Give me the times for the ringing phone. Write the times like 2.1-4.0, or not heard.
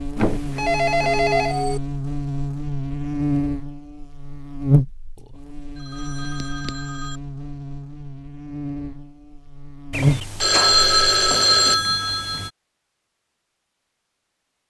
0.1-1.8, 5.2-7.2, 9.9-12.5.